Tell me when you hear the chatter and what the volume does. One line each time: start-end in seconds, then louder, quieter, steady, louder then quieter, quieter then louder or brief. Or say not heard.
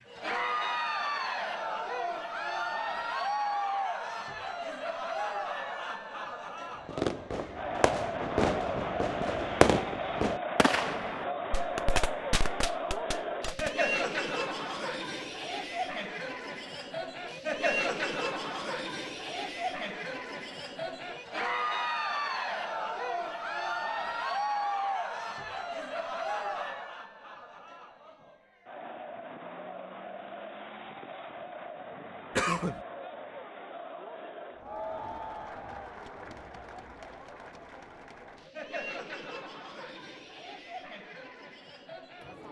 0.0-42.4 quieter.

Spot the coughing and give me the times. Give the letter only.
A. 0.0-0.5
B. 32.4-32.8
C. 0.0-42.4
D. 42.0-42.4
B.